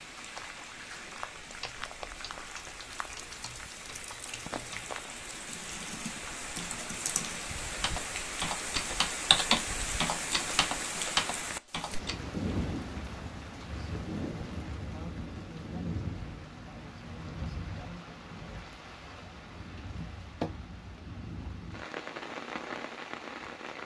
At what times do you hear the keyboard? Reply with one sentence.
You can hear the keyboard from 1.4 to 12.2 s.